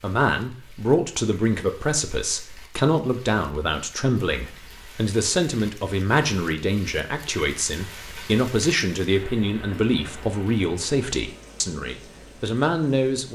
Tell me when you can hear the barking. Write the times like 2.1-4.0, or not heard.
not heard.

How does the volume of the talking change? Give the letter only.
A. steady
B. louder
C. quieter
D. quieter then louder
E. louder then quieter
A.